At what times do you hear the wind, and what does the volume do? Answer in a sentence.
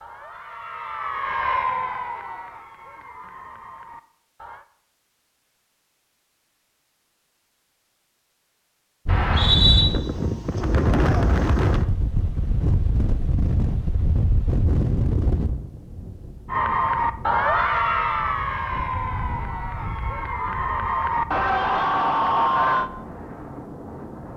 The wind can be heard from 9.1 to 24.3 s, getting quieter.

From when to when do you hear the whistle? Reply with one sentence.
You can hear the whistle from 9.1 to 9.8 s.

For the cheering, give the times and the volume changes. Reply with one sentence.
You can hear the cheering from 0.0 to 4.7 s, getting louder then quieter; and from 16.4 to 22.9 s, getting quieter then louder.